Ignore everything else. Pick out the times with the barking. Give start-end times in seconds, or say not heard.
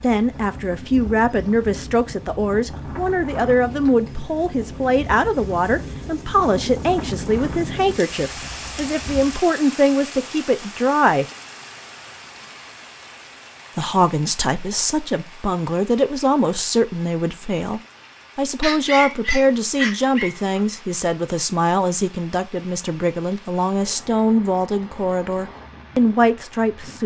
18.6-20.6.